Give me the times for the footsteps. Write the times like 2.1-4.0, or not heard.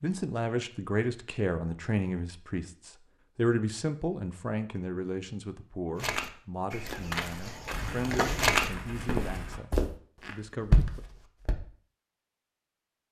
6.0-11.6.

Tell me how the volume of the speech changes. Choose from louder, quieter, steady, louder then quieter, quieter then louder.
quieter.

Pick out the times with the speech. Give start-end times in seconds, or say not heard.
0.0-11.0.